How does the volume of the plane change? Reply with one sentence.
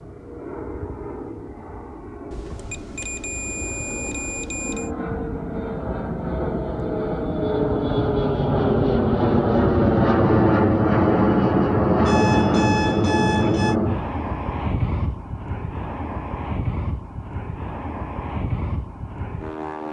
The volume of the plane goes up, then down.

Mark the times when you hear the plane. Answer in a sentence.
You can hear the plane from 0.0 to 19.8 s.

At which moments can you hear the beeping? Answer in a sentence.
You can hear the beeping from 2.3 to 4.9 s and from 12.1 to 13.8 s.